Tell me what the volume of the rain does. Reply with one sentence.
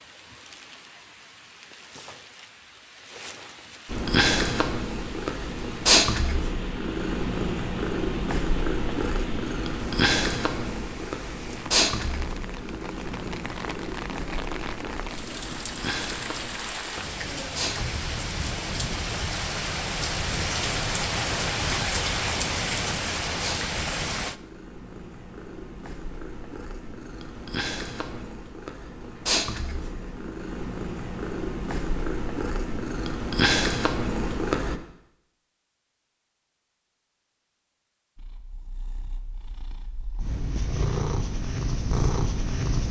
The volume of the rain goes up.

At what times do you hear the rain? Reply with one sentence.
You can hear the rain from 0.0 to 24.4 s.